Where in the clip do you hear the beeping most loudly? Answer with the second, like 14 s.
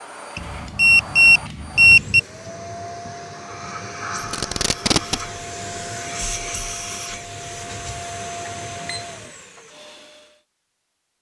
2 s.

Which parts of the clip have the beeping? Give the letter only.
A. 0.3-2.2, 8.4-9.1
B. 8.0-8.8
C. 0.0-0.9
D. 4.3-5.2
A.